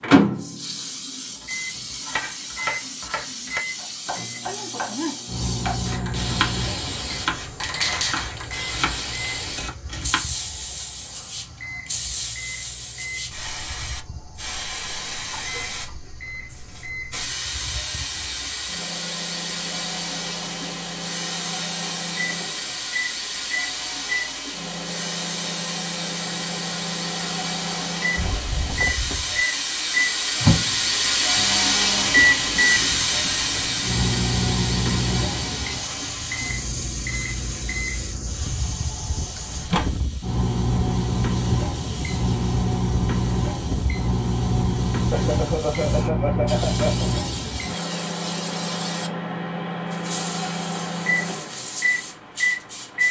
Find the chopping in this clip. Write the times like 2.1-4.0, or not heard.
1.4-10.2.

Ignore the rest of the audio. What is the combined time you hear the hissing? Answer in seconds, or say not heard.
53 s.